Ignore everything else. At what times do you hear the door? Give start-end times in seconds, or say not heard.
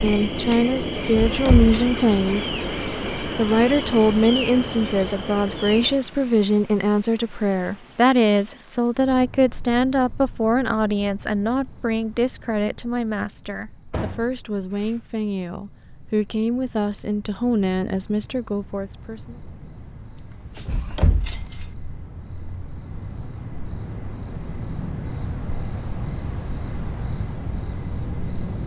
1.0-2.1, 13.9-14.9, 20.6-21.6.